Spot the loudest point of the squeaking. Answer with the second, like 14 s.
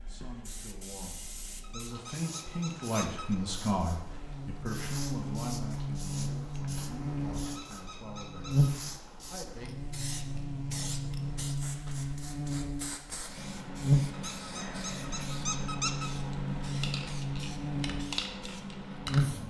16 s.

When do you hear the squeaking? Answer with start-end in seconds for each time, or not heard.
1.6-3.4, 7.5-8.8, 14.1-16.1.